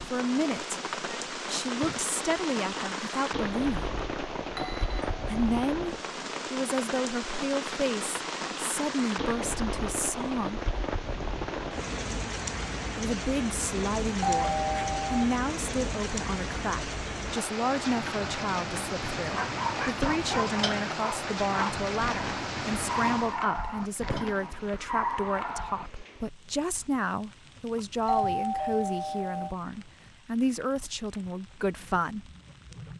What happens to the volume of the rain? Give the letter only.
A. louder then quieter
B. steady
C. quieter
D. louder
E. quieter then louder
C.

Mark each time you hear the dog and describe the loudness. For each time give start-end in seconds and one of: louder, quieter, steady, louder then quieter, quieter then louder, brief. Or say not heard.
19.3-25.9 steady.